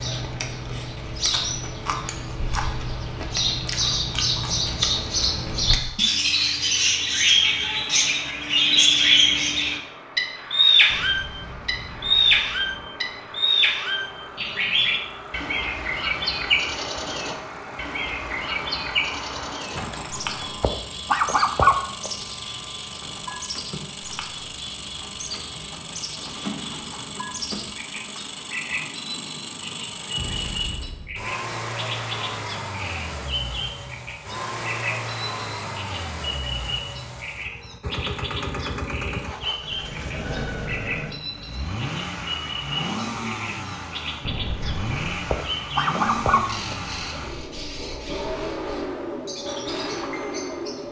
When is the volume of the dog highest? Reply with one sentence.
The volume of the dog peaks at 22 seconds.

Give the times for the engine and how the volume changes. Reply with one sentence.
The engine can be heard from 5.7 to 50.8 s, getting louder.